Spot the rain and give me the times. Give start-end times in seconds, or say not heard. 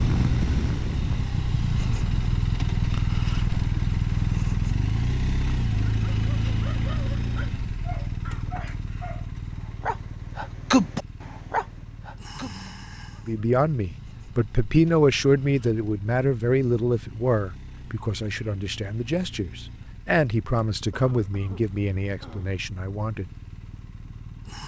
not heard.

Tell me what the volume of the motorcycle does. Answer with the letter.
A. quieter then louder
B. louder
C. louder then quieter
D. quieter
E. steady
D.